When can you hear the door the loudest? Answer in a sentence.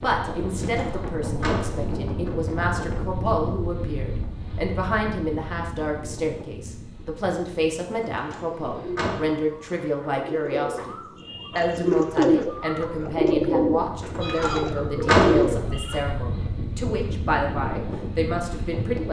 The volume of the door peaks at 15 seconds.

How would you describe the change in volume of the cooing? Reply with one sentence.
The volume of the cooing goes up.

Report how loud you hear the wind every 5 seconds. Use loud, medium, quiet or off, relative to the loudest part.
loud, medium, medium, loud.